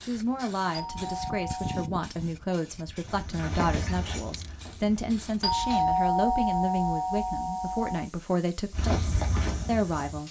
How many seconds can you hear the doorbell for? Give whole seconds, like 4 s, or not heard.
4 s.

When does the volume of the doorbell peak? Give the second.
6 s.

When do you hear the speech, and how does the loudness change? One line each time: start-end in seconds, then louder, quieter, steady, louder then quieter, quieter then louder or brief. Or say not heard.
0.0-10.2 steady.